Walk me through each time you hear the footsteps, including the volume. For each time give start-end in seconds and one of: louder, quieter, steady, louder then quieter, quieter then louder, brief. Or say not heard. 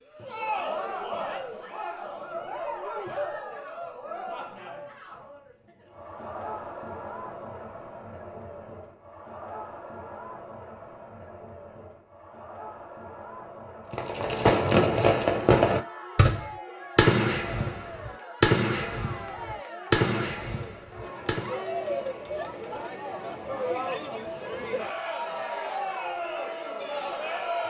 not heard.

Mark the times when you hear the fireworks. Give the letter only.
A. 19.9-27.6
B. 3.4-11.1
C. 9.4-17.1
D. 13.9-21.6
D.